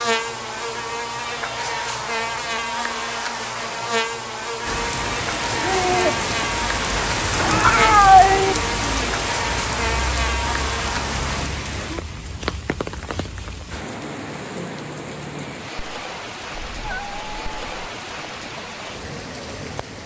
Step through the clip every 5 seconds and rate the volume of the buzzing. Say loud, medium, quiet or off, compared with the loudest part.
loud, loud, loud, off.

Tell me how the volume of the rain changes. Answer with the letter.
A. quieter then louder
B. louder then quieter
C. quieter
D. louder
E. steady
C.